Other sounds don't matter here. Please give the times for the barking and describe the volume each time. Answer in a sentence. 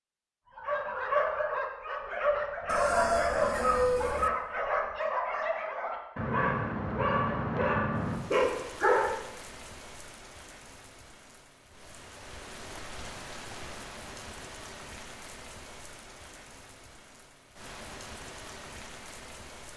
The barking can be heard from 0.6 to 9.2 s, at a steady volume.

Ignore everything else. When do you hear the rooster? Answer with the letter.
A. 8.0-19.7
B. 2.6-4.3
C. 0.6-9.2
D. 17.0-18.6
B.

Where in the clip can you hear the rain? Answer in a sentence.
You can hear the rain from 8.0 to 19.7 s.